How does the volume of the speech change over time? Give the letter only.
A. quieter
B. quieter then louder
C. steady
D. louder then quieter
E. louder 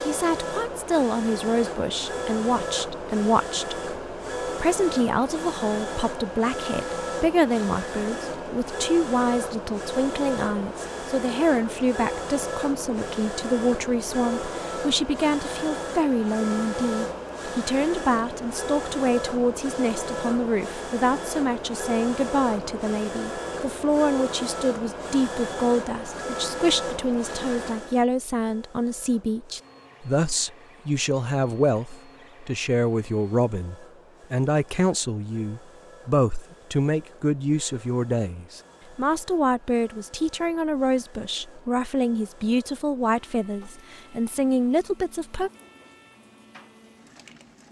C.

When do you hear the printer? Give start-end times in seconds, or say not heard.
0.0-47.6.